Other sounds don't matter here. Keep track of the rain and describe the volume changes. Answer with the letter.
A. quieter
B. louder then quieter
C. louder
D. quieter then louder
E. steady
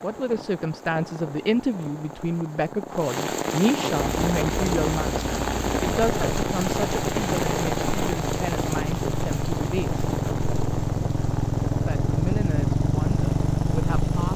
B.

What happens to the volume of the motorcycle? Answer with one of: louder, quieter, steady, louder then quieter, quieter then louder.
louder.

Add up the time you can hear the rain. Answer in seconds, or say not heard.
14 s.